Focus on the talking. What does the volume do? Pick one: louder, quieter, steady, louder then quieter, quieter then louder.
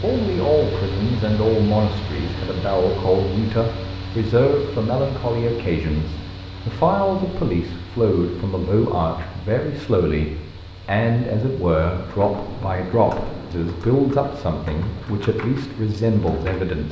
steady.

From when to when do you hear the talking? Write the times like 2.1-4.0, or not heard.
0.0-16.8.